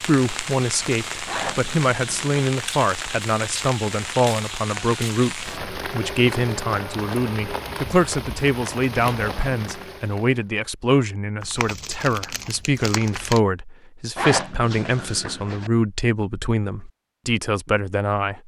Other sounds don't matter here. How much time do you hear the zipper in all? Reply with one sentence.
The zipper can be heard for 4 seconds in total.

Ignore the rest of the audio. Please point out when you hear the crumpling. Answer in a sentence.
You can hear the crumpling from 11.4 to 13.4 s.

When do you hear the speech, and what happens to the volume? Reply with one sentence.
The speech can be heard from 0.1 to 18.4 s, at a steady volume.